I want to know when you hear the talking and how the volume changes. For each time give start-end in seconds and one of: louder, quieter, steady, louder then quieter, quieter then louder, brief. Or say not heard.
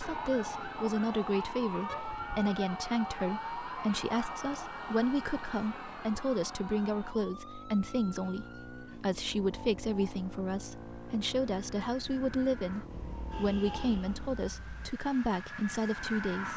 0.0-16.5 steady.